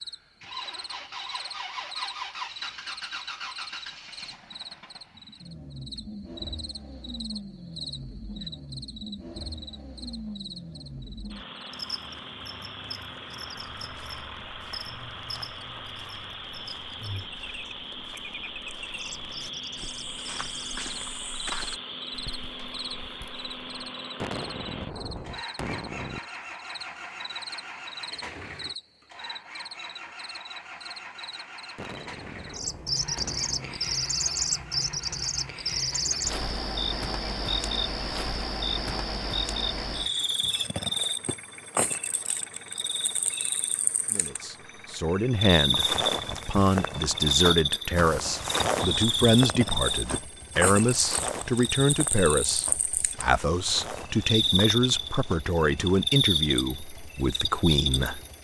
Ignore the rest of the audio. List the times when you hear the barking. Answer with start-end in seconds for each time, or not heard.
not heard.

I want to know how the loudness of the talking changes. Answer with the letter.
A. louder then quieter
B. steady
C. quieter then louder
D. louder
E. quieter
B.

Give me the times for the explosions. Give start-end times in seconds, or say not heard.
24.2-26.2, 31.8-33.8.